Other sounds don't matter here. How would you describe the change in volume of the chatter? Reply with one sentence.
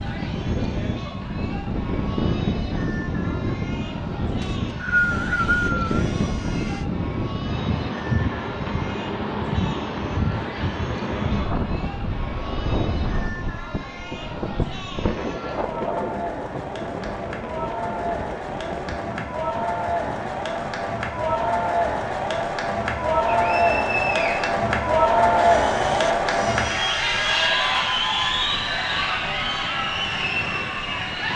The volume of the chatter goes up.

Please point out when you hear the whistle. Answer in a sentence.
You can hear the whistle from 4.4 to 6.0 s and from 23.2 to 24.5 s.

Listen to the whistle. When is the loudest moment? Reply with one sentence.
The loudest moment of the whistle is at 5 seconds.